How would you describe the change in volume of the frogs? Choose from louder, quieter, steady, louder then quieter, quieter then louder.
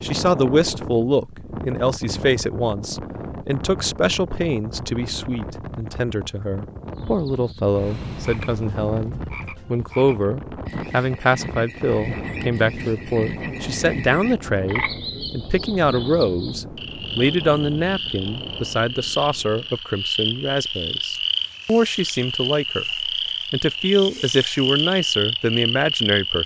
louder.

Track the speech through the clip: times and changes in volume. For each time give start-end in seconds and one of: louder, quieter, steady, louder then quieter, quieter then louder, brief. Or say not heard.
0.0-26.4 steady.